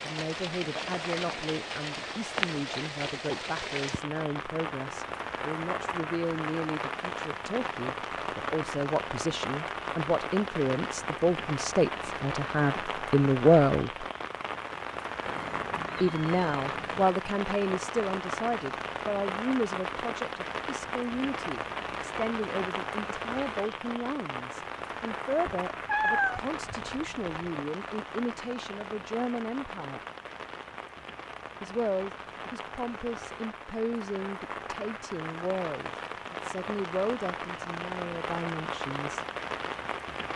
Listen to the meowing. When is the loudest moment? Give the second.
26 s.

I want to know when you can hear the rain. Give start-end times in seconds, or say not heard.
0.0-40.3.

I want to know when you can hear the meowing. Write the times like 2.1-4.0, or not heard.
15.2-17.1, 25.4-27.4.